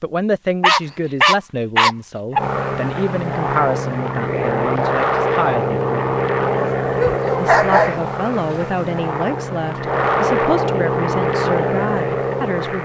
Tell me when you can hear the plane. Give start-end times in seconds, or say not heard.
2.4-12.7.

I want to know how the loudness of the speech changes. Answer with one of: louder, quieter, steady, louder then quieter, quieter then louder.
steady.